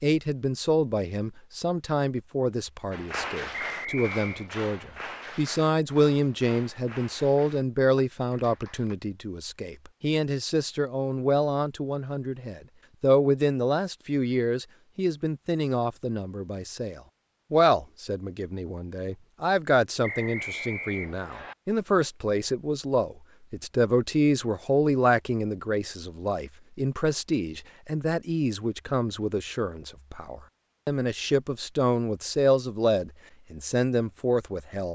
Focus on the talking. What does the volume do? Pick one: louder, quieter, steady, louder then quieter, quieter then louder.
steady.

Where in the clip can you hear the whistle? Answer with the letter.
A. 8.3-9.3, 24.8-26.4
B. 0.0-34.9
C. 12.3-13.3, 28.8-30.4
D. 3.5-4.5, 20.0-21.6
D.